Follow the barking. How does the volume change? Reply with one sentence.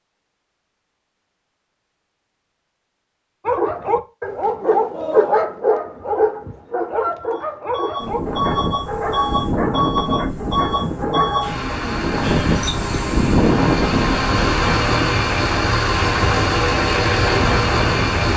The loudness of the barking goes down.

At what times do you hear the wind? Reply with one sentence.
The wind can be heard from 8.0 to 18.3 s.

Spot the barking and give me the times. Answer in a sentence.
The barking can be heard from 3.5 to 11.7 s.